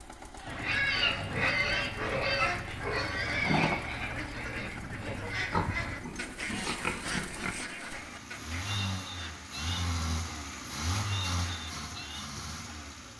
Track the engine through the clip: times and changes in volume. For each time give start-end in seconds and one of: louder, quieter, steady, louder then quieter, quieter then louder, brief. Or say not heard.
0.0-13.1 louder.